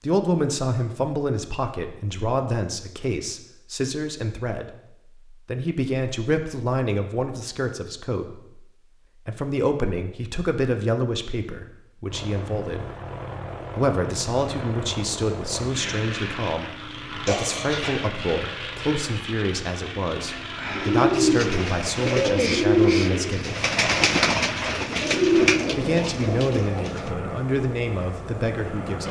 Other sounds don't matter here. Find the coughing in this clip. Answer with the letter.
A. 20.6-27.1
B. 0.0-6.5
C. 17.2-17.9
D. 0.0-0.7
C.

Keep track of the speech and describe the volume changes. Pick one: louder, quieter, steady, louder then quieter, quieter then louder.
steady.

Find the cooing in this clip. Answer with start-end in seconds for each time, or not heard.
20.6-27.1.